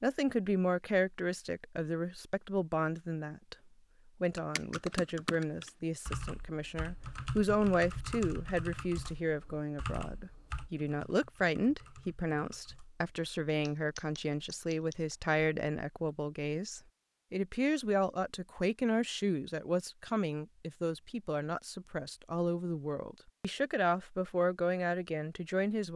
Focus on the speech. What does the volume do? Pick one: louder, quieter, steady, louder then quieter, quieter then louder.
steady.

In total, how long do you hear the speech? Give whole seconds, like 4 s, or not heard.
25 s.